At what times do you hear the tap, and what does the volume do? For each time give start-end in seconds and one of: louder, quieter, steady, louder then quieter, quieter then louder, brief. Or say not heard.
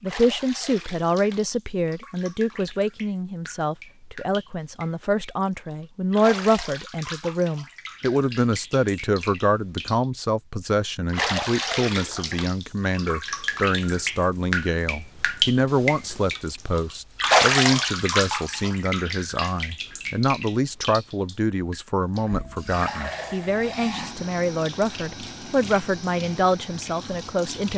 0.1-27.7 louder then quieter.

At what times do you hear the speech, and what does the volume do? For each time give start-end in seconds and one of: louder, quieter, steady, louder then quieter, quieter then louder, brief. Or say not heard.
0.0-27.7 steady.